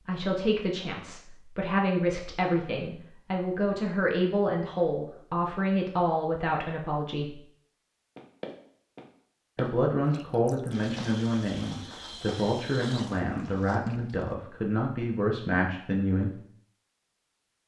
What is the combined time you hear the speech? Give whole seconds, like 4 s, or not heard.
14 s.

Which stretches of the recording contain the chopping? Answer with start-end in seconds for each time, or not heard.
not heard.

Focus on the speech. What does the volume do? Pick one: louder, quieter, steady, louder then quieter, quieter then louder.
steady.